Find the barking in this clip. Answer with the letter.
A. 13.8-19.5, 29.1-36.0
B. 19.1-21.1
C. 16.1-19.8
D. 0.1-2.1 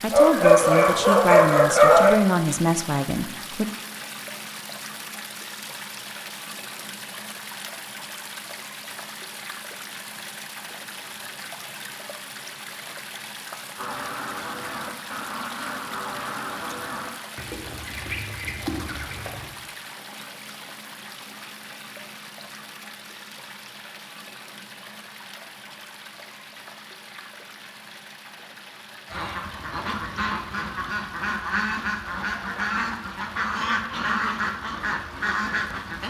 D.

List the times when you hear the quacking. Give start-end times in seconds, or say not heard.
13.8-19.5, 29.1-36.0.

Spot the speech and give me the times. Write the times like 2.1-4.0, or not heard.
0.0-3.7.